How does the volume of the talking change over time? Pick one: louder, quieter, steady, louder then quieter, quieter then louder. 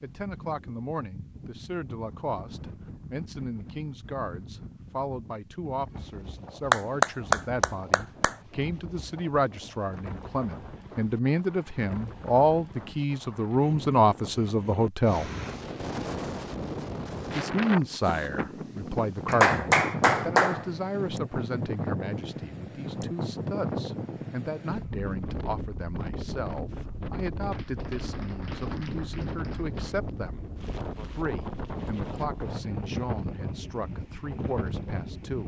louder then quieter.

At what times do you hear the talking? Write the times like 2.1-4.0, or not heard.
0.0-15.3, 17.3-30.4, 31.1-35.4.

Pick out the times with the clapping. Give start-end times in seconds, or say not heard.
6.7-8.3, 19.2-20.6, 27.5-29.9.